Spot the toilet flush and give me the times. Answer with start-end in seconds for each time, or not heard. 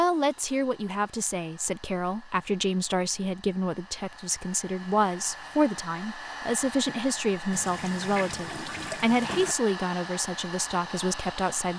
7.5-9.6.